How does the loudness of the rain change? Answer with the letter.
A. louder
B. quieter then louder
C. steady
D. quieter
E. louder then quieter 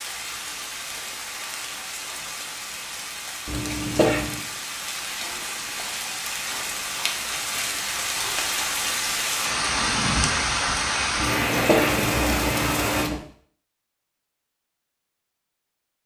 A.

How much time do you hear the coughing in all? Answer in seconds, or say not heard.
3 s.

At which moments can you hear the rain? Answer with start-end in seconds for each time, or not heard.
0.0-13.1.